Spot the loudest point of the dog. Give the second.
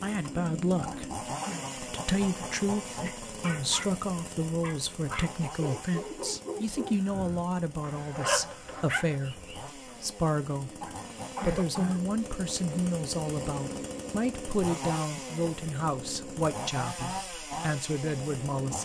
8 s.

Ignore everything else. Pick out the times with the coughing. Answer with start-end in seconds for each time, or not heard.
0.8-1.7, 10.8-12.1.